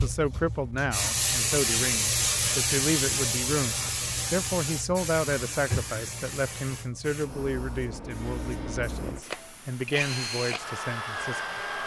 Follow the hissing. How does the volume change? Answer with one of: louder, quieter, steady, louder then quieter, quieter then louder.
quieter.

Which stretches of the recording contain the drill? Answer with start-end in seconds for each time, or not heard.
8.0-11.8.